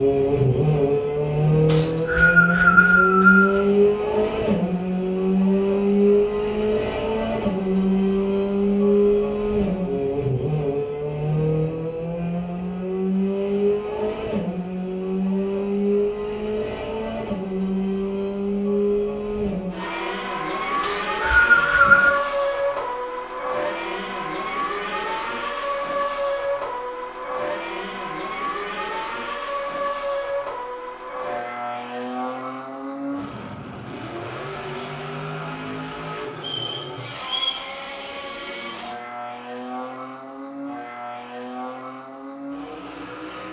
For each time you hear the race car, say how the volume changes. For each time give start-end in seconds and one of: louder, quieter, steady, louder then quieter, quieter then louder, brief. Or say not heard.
0.0-43.4 quieter.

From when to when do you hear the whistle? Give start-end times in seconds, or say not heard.
1.6-3.6, 20.8-22.1, 36.4-37.6.